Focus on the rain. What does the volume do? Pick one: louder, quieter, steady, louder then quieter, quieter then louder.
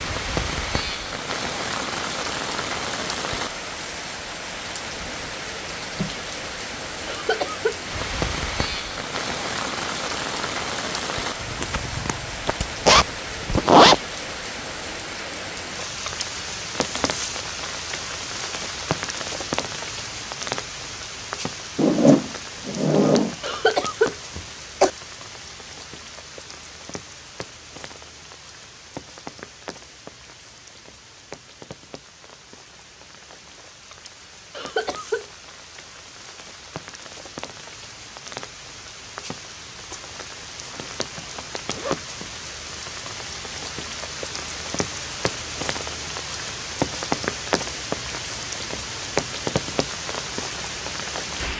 quieter then louder.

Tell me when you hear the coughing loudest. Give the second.
24 s.